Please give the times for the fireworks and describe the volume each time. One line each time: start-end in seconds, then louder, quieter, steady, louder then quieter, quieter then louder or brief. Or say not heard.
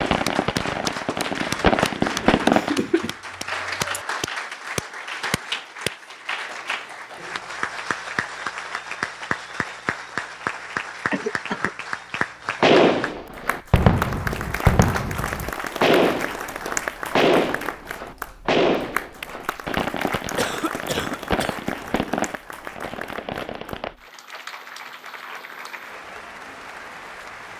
0.0-2.7 brief
12.6-23.9 quieter.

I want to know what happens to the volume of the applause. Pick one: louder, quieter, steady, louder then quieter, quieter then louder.
quieter.